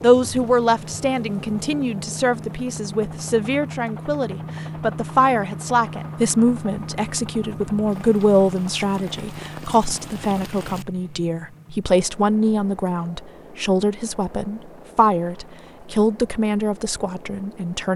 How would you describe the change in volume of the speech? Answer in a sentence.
The loudness of the speech stays about the same.